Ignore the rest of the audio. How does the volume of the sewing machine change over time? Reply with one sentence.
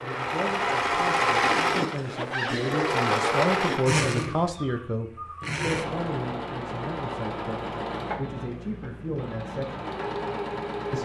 The volume of the sewing machine goes down.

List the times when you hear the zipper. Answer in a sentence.
You can hear the zipper from 1.9 to 2.6 s.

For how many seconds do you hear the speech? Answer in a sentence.
You can hear the speech for 10 seconds altogether.